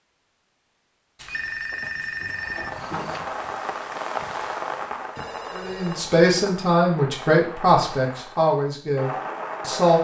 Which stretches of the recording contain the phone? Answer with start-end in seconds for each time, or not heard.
1.1-3.2, 5.2-6.0.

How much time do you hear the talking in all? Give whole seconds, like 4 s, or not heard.
4 s.